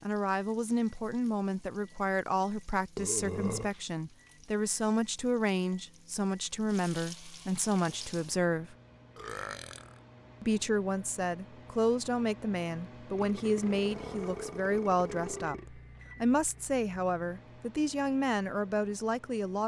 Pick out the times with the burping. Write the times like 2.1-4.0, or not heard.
3.0-3.7, 9.2-9.9, 13.2-15.7.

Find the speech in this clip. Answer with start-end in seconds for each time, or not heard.
0.0-8.8, 10.4-19.6.